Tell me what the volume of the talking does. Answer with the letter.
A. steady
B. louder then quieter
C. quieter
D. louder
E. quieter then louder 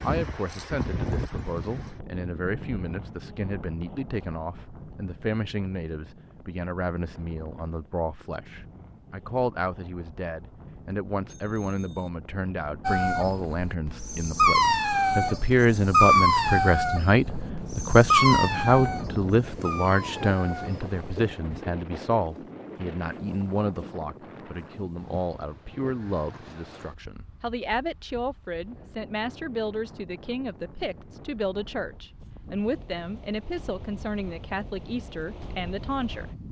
B.